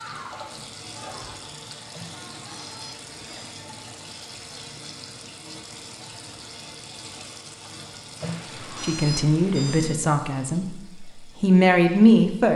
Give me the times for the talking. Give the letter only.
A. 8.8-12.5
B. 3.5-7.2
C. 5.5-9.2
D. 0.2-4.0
A.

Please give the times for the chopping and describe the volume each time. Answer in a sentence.
The chopping can't be heard in this clip.